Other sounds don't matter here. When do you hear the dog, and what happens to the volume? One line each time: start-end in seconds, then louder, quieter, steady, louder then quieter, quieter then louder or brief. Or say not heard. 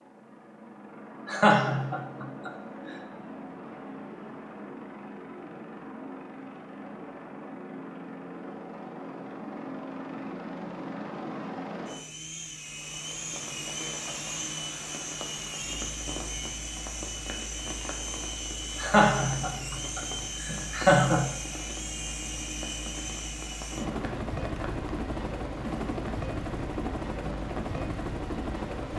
not heard.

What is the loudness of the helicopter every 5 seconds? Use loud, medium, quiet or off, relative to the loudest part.
medium, medium, loud, loud, loud, loud.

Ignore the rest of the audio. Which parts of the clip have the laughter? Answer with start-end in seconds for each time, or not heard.
1.2-2.5, 18.8-21.3.